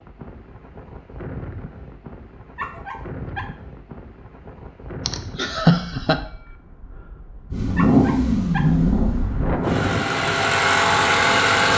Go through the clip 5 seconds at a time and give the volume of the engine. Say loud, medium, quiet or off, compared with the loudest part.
off, loud, loud.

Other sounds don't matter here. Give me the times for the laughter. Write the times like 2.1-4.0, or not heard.
5.0-6.2.